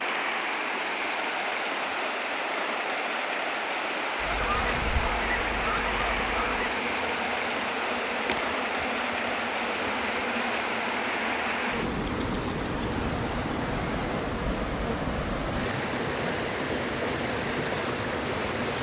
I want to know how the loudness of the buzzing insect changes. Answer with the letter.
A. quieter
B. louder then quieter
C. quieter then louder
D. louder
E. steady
D.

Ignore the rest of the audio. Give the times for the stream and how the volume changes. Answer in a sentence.
The stream can be heard from 0.0 to 18.7 s, at a steady volume.